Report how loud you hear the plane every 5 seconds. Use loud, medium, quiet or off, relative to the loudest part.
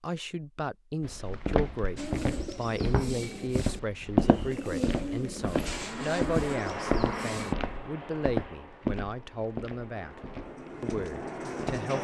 off, loud, loud.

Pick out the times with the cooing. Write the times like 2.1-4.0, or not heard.
1.9-7.5, 10.4-11.9.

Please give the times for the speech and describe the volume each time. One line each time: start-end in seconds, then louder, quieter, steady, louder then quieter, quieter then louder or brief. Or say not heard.
0.0-11.9 steady.